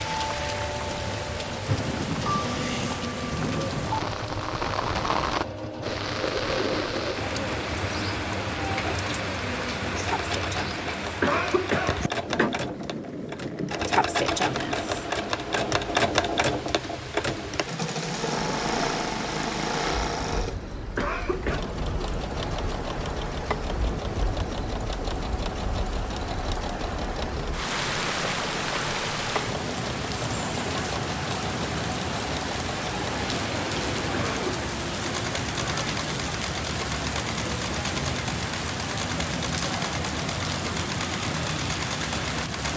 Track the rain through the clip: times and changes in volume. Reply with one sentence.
The rain can be heard from 0.0 to 42.7 s, getting quieter then louder.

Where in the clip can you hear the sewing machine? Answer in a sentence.
The sewing machine can be heard from 0.0 to 42.7 s.